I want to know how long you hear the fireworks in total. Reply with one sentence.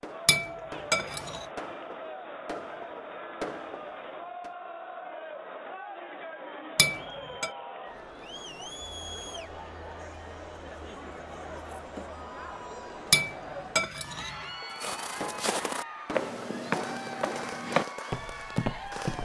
The fireworks can be heard for 9 seconds in total.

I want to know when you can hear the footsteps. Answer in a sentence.
You can hear the footsteps from 14.8 to 19.2 s.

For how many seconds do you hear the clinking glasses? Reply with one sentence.
The clinking glasses can be heard for 3 seconds in total.